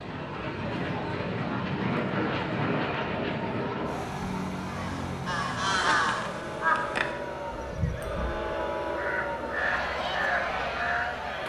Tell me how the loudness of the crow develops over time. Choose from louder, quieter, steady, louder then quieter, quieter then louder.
quieter then louder.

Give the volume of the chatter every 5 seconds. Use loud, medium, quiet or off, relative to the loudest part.
medium, loud, loud.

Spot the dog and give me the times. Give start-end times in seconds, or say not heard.
not heard.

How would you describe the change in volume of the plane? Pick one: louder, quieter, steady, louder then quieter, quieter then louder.
quieter.